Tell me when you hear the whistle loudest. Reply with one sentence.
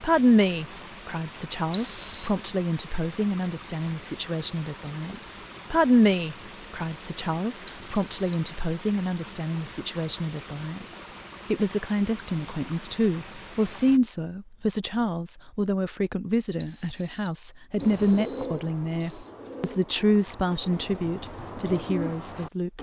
The volume of the whistle peaks at 2 seconds.